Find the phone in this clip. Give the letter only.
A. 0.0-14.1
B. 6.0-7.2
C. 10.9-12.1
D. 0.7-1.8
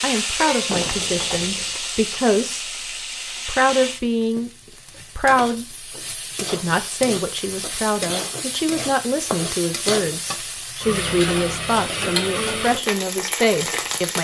D.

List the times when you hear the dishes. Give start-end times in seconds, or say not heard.
not heard.